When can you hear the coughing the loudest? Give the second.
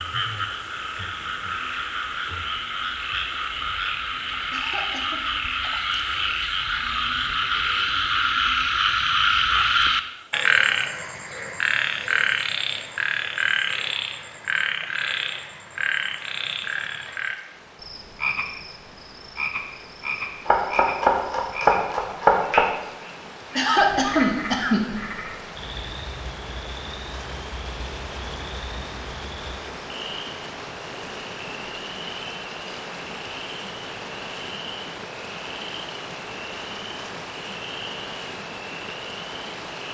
24 s.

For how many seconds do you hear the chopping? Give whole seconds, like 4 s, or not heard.
2 s.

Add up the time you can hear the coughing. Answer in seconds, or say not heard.
2 s.